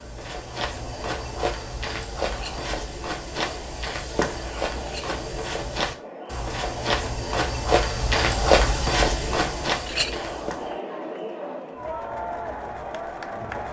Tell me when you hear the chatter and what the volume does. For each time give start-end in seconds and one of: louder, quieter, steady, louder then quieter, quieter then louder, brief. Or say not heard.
0.0-13.6 louder.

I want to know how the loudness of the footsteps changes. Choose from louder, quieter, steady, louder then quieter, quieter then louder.
louder.